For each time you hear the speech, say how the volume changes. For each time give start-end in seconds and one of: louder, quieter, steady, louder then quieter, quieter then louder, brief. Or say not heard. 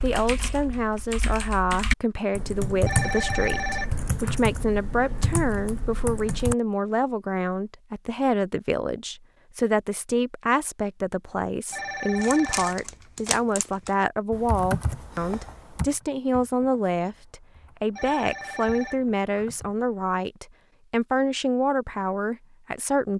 0.0-23.1 steady.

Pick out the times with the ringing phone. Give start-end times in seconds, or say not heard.
2.9-4.4, 11.7-12.9, 17.9-19.2.